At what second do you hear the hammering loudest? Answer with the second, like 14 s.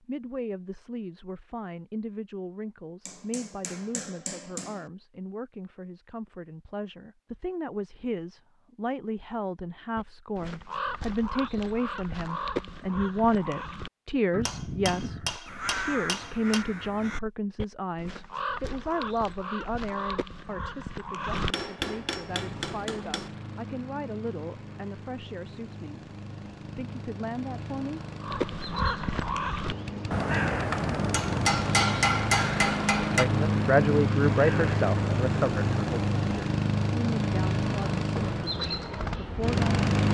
32 s.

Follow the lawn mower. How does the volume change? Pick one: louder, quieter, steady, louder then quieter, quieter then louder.
louder.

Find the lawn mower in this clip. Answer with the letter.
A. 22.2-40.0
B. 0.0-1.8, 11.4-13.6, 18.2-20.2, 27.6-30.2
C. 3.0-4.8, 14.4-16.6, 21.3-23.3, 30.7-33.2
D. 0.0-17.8
A.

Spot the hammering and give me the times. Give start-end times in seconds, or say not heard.
3.0-4.8, 14.4-16.6, 21.3-23.3, 30.7-33.2.